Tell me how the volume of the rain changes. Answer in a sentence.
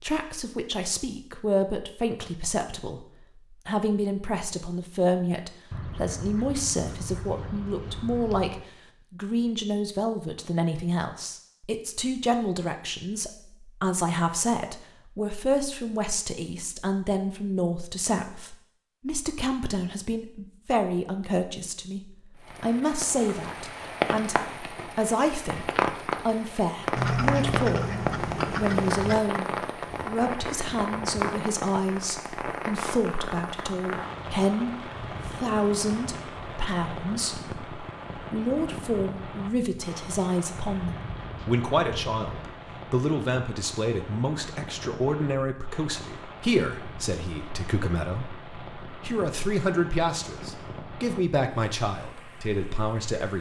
The loudness of the rain goes down.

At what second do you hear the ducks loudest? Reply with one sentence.
The loudest moment of the ducks is at 27 seconds.